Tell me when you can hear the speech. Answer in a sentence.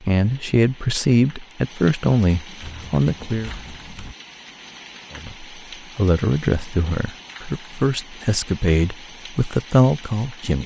The speech can be heard from 0.0 to 3.5 s and from 5.2 to 10.6 s.